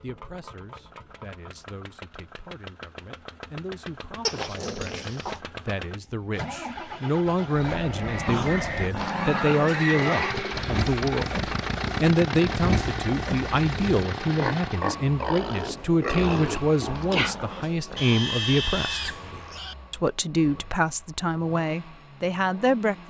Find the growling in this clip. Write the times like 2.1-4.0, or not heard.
4.2-5.4, 8.2-10.3, 16.2-18.1.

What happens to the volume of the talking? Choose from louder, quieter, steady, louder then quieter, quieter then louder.
louder.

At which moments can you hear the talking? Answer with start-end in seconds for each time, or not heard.
0.0-19.1, 19.9-23.0.